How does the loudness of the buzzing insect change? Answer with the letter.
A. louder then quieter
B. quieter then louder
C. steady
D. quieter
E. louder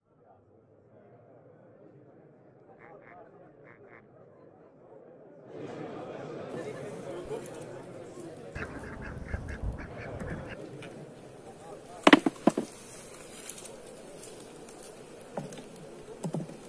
A.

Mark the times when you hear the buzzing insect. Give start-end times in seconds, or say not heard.
6.5-16.6.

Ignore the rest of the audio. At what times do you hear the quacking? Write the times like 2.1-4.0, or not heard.
2.8-4.2, 8.6-10.6.